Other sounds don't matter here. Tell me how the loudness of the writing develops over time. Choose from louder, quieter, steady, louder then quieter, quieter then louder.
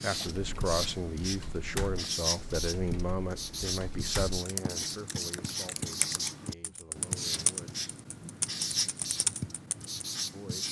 steady.